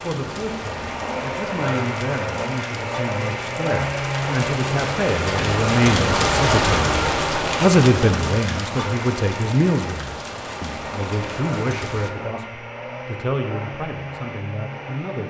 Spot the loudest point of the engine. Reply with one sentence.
The loudest moment of the engine is at 4 seconds.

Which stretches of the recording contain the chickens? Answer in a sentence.
The chickens can't be heard in this clip.